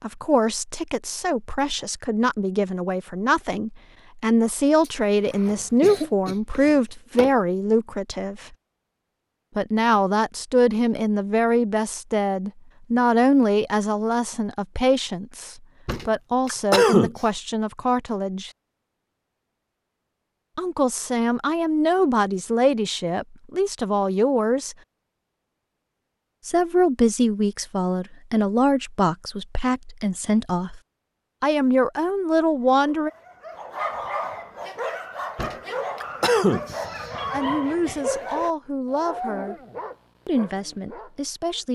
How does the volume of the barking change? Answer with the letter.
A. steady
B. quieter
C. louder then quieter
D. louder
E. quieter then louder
B.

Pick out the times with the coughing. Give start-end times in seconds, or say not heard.
4.8-7.3, 15.8-17.1, 35.4-37.1.